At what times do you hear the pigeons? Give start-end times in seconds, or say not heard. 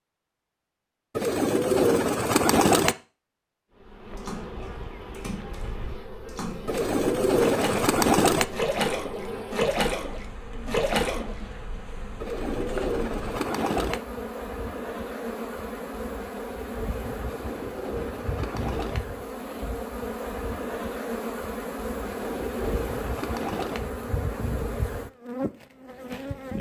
1.1-3.0, 6.7-8.4, 12.2-14.0, 17.2-19.0, 22.0-23.8.